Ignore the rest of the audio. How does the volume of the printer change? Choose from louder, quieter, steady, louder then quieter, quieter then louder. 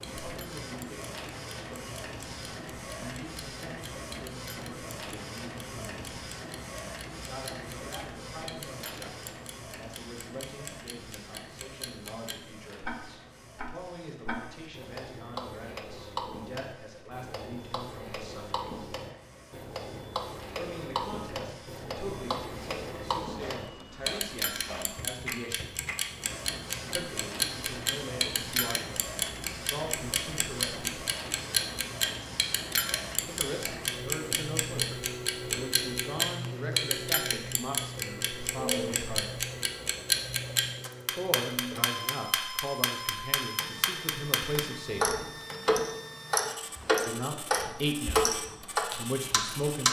quieter then louder.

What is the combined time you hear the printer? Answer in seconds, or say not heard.
50 s.